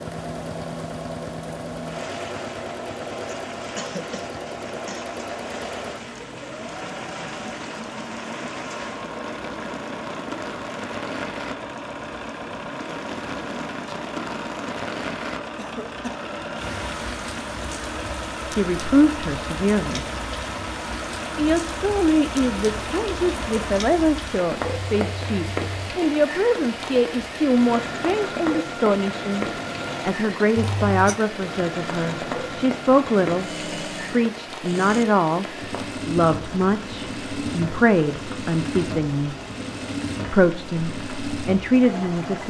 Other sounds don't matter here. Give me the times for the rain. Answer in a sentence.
You can hear the rain from 0.0 to 42.4 s.